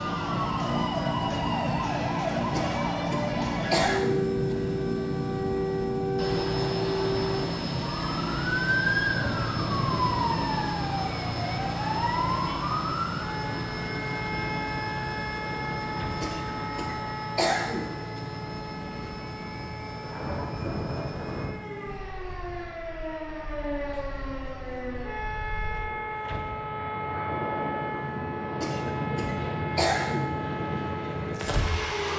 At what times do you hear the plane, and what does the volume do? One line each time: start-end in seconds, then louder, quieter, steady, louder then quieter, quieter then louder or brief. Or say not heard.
0.0-32.1 quieter then louder.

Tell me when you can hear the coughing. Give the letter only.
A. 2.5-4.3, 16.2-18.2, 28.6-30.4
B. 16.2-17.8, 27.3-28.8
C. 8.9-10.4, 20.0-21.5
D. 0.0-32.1
A.